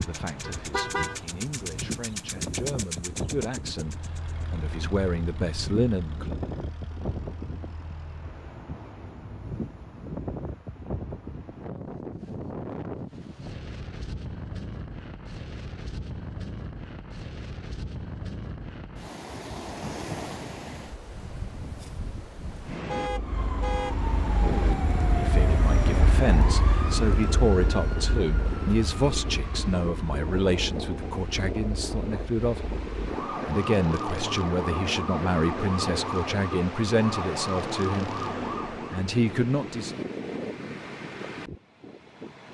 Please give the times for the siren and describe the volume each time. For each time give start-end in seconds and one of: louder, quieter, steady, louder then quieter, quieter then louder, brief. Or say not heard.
23.0-39.0 quieter then louder.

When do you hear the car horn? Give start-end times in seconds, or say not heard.
0.5-1.2, 22.9-23.9.